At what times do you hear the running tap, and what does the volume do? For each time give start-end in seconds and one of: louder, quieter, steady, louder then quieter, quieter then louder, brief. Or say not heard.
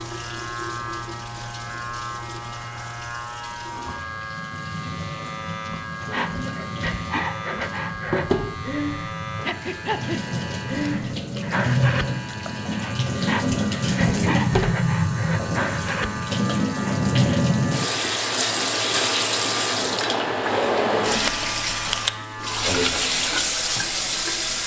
0.0-24.6 louder.